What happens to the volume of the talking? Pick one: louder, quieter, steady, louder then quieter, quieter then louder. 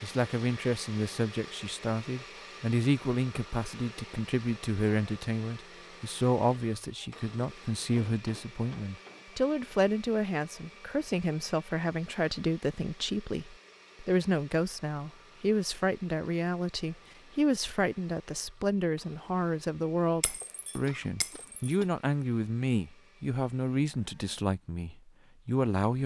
steady.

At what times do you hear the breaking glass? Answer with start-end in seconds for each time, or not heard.
20.2-21.6.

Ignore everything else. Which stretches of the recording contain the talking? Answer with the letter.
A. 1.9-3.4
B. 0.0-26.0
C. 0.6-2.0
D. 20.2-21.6
B.